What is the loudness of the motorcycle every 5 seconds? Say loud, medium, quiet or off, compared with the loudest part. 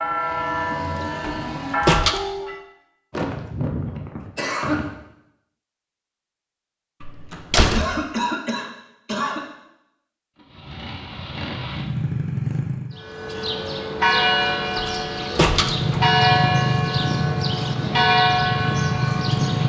off, off, medium, loud.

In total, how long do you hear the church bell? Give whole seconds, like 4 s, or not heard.
9 s.